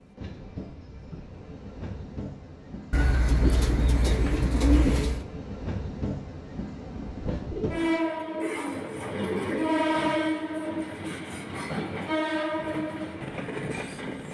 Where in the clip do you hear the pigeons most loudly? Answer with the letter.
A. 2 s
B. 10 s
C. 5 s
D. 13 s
C.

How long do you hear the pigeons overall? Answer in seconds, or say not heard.
5 s.